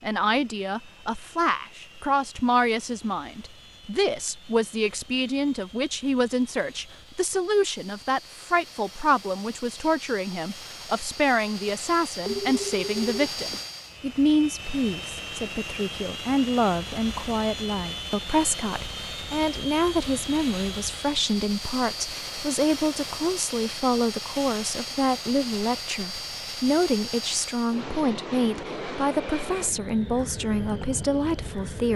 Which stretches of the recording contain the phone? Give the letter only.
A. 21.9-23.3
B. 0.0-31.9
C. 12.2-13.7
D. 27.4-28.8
C.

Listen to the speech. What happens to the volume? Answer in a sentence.
The volume of the speech stays about the same.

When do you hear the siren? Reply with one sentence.
The siren can't be heard in this clip.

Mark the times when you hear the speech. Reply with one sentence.
The speech can be heard from 0.0 to 31.9 s.